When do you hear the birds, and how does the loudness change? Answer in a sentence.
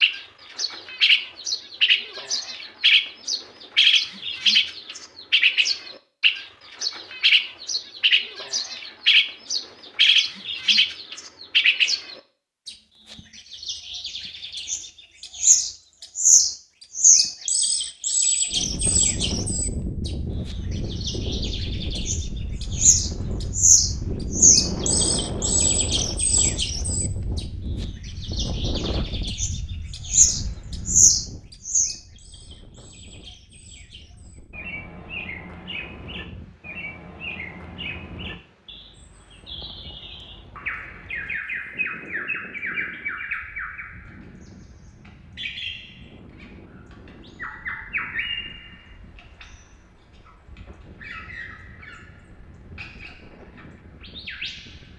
You can hear the birds from 0.0 to 54.9 s, getting quieter.